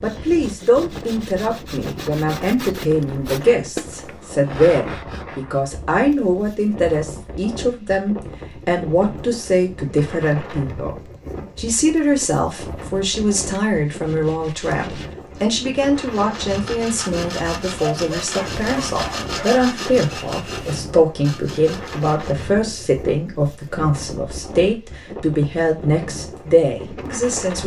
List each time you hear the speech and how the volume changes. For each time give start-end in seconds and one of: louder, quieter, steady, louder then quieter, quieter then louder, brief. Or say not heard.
0.0-27.6 steady.